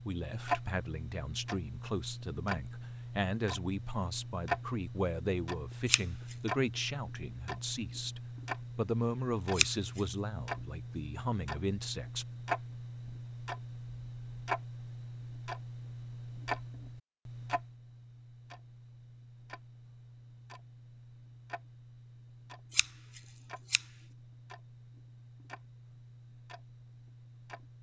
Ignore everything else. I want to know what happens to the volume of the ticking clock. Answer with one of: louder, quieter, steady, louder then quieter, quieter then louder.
quieter.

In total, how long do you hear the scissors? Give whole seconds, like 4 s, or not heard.
2 s.